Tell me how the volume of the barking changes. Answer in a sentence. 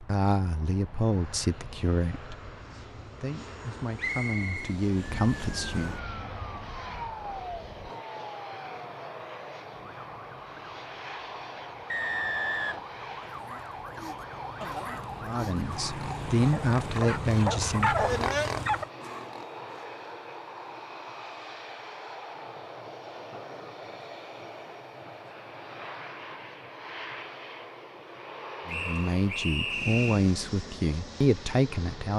The loudness of the barking goes up.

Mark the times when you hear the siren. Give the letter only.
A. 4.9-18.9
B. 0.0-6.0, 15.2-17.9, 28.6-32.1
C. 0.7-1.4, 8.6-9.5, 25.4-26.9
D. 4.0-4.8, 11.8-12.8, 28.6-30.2
A.